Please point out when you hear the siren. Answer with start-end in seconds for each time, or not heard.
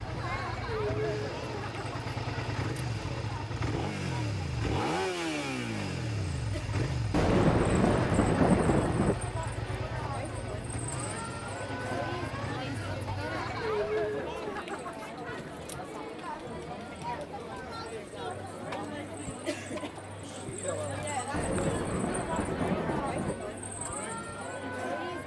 not heard.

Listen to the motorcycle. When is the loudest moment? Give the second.
5 s.